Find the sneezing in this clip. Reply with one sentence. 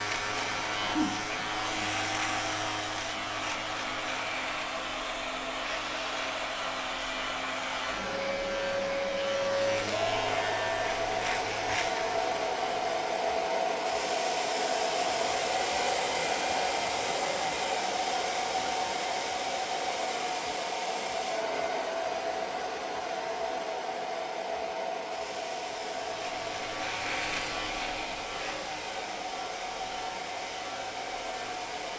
You can hear the sneezing from 0.8 to 1.4 s.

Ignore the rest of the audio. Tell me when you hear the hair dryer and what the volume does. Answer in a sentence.
The hair dryer can be heard from 0.0 to 31.9 s, getting louder then quieter.